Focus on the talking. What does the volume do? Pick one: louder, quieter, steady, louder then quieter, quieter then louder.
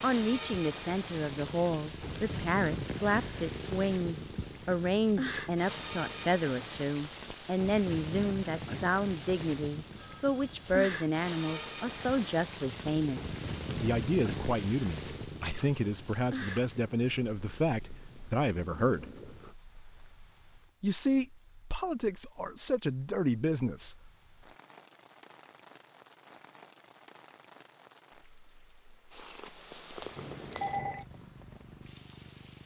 steady.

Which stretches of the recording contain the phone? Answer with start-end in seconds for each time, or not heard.
9.9-10.8, 30.1-31.1.